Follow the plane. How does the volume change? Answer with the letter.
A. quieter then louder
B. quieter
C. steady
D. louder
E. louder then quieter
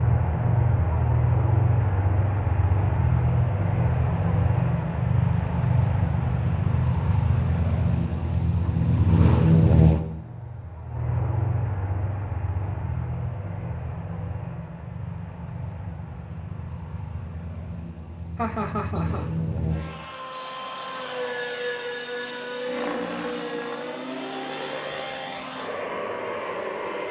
B.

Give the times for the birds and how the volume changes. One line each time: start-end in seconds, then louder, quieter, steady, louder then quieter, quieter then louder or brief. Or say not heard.
not heard.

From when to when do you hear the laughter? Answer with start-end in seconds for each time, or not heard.
18.4-19.3.